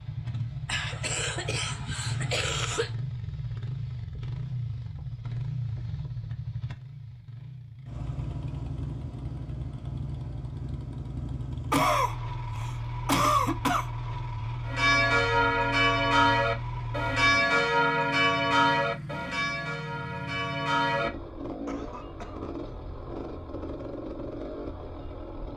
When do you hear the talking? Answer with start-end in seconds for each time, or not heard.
not heard.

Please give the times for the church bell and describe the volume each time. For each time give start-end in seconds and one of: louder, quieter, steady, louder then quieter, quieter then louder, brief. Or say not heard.
14.7-21.1 quieter.